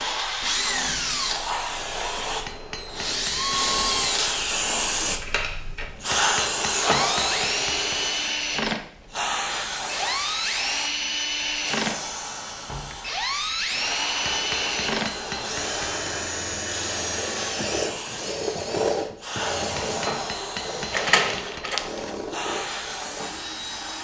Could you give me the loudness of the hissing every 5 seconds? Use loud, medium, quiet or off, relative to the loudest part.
loud, loud, medium, medium, medium.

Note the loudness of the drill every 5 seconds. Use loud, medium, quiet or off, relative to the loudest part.
loud, loud, loud, loud, medium.